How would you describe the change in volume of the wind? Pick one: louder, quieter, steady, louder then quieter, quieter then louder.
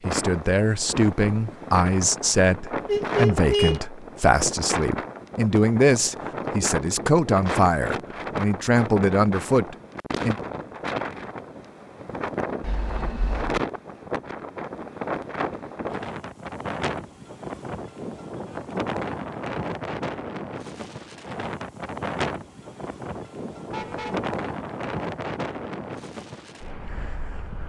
steady.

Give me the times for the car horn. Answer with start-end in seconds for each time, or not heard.
2.9-3.8, 12.6-13.6, 23.7-24.3.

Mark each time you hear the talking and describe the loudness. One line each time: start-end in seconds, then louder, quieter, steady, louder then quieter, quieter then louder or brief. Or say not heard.
0.1-10.3 steady.